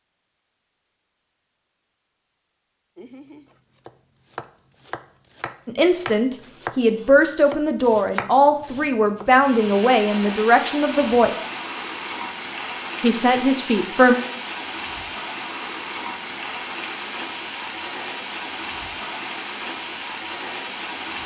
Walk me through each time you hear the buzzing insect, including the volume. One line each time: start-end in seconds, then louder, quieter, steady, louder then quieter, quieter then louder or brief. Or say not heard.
not heard.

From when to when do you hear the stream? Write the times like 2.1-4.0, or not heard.
9.2-21.2.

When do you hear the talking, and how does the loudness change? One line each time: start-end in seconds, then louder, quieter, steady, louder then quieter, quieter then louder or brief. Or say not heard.
5.7-11.3 steady
13.0-14.2 brief.